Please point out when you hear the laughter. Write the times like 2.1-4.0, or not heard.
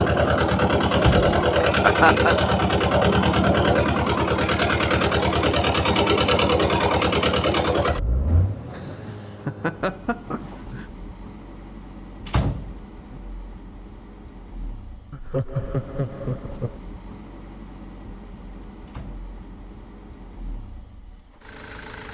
1.6-2.4, 8.2-10.8, 15.1-16.8.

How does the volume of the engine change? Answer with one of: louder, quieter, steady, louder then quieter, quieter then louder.
quieter.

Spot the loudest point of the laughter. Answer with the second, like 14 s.
2 s.